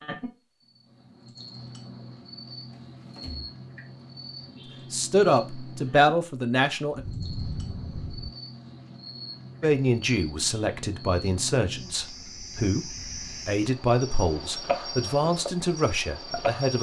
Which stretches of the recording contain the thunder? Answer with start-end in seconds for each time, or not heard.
6.9-8.3.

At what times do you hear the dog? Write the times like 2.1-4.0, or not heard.
not heard.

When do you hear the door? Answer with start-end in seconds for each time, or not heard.
2.7-3.5.